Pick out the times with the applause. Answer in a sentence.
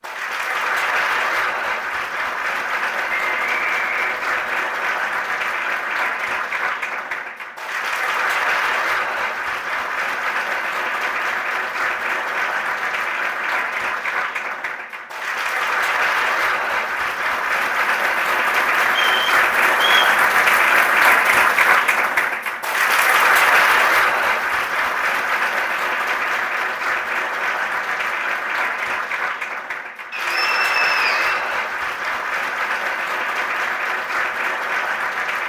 You can hear the applause from 0.0 to 35.4 s.